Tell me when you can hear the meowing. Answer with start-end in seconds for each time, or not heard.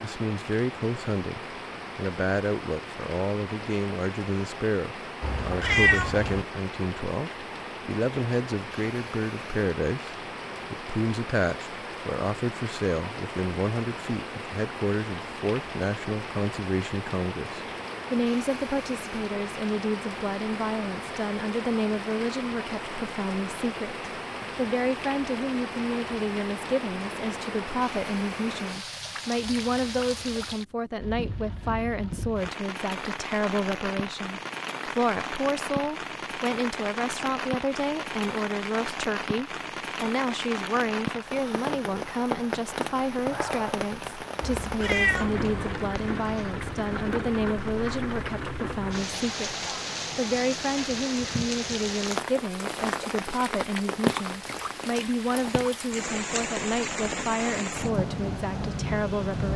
5.2-6.5, 44.4-45.8.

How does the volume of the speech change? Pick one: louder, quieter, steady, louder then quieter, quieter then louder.
steady.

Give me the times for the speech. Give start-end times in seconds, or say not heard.
0.0-59.5.